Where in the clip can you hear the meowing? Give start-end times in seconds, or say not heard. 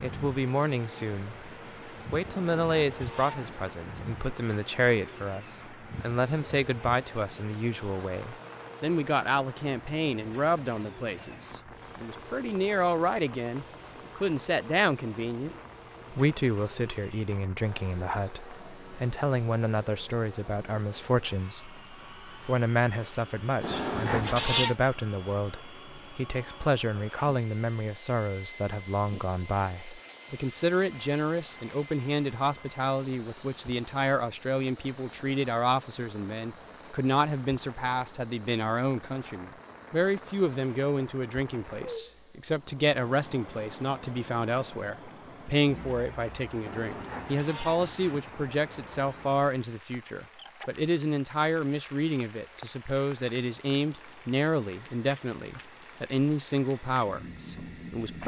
2.2-3.6, 23.6-24.8, 46.6-48.2.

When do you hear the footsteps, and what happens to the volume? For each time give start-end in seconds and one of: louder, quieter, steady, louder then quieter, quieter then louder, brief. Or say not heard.
not heard.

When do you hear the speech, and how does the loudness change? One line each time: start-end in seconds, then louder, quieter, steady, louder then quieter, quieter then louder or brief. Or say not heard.
0.0-1.5 brief
2.1-58.2 steady.